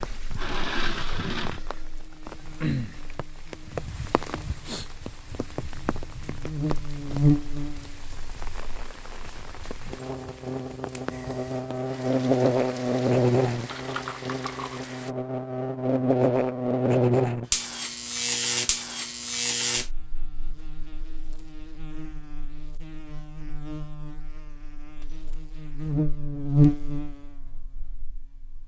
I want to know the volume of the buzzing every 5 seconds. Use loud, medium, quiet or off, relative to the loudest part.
quiet, loud, loud, loud, quiet, loud.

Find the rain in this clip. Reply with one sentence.
The rain can be heard from 0.0 to 15.2 s.